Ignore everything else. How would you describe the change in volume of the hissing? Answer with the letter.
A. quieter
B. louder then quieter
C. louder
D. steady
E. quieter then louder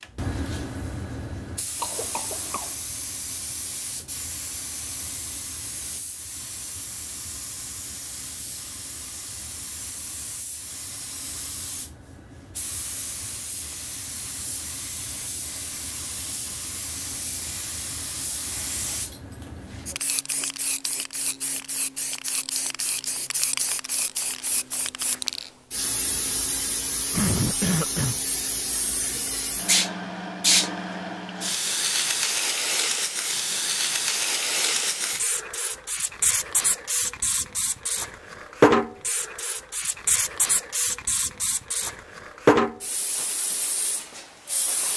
C.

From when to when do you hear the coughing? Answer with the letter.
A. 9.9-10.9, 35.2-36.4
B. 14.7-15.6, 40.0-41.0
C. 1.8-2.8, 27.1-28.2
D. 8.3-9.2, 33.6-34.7
C.